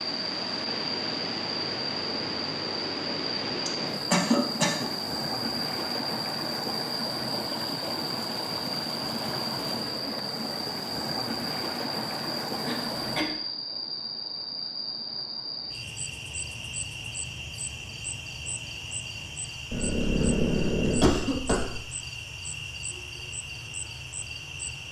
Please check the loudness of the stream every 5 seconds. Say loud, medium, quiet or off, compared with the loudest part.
loud, loud, loud, quiet, quiet.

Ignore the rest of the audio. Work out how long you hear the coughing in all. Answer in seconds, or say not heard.
4 s.